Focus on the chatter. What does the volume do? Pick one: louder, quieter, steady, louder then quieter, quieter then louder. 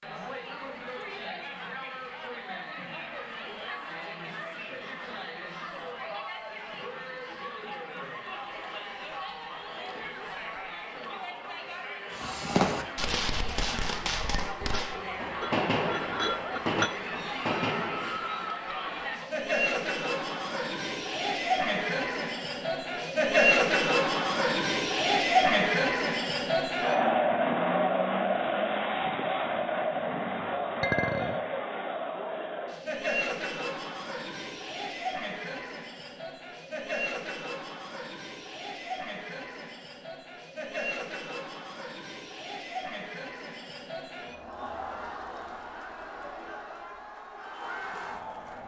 louder then quieter.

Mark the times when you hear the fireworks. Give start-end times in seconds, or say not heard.
12.1-18.2.